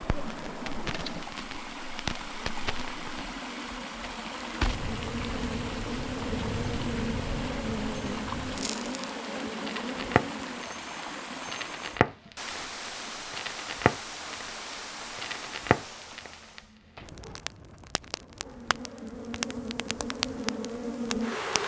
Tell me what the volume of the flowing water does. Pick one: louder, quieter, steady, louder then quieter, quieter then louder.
steady.